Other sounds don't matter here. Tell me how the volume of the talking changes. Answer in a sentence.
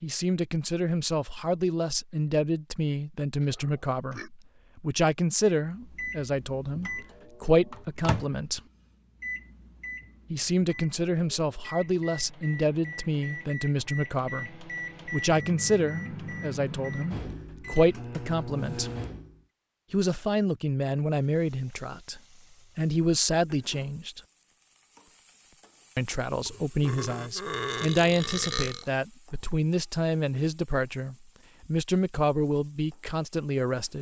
The loudness of the talking stays about the same.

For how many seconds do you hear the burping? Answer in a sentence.
The burping can be heard for 3 seconds in total.